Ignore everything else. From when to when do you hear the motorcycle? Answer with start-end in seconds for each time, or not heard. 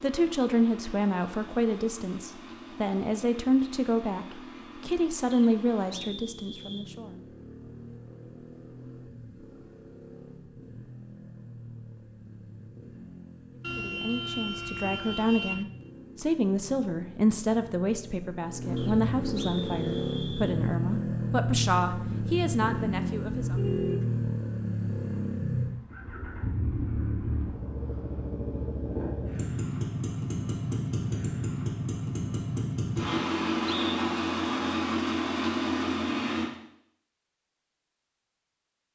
0.0-36.5.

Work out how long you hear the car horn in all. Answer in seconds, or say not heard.
3 s.